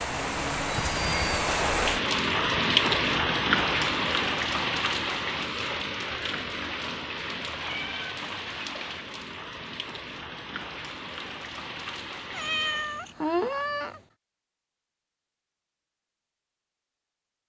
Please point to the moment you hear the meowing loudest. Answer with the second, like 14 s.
13 s.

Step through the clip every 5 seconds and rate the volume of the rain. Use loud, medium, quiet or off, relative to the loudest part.
loud, medium, quiet, off.